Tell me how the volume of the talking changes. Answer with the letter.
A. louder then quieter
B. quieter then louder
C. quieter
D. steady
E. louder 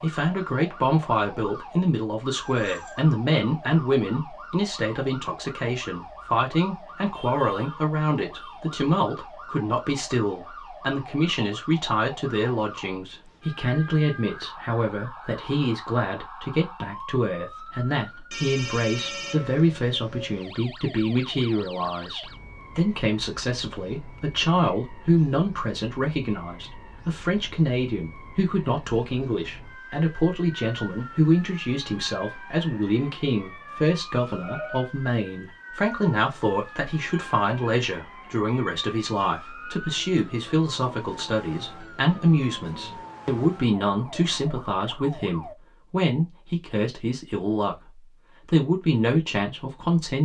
D.